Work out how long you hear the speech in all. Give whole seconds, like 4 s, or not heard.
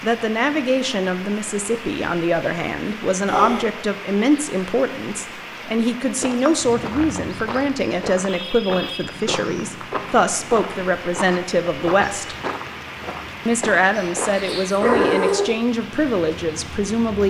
16 s.